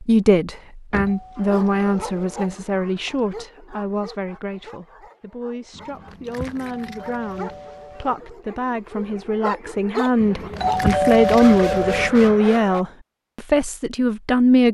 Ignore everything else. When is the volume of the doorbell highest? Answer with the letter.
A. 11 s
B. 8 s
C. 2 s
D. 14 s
A.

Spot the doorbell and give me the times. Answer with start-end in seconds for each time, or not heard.
1.1-2.5, 6.7-8.2, 10.6-12.1.